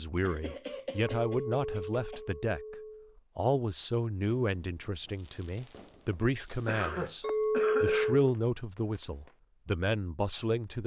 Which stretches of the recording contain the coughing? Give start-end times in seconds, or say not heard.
0.2-2.2, 6.7-8.2.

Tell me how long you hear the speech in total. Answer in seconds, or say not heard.
10 s.